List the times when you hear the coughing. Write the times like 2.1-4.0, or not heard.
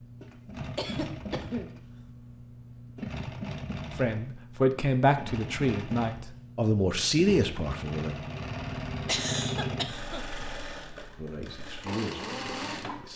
0.8-1.7, 9.1-10.8.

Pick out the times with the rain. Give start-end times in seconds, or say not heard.
not heard.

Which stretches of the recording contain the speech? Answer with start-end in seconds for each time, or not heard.
4.0-8.2, 11.2-13.1.